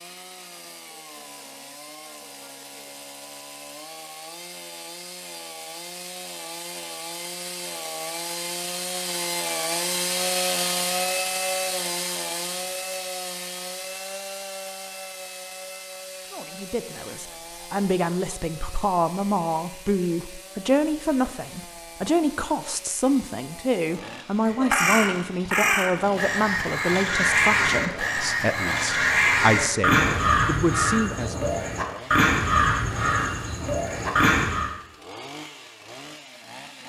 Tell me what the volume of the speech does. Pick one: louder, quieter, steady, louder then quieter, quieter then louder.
steady.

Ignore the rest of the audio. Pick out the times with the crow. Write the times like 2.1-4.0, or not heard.
24.4-34.7.